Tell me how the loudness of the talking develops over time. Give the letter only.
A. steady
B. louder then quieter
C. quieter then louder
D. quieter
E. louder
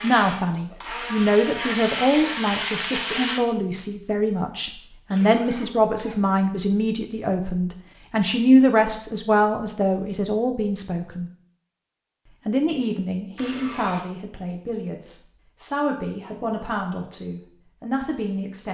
D.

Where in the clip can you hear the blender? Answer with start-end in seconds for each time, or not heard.
0.0-3.4.